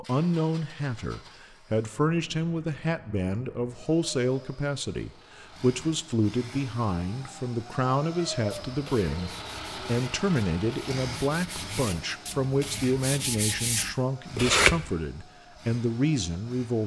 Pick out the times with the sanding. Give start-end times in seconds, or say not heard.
8.5-14.9.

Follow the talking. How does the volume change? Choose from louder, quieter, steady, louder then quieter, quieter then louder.
steady.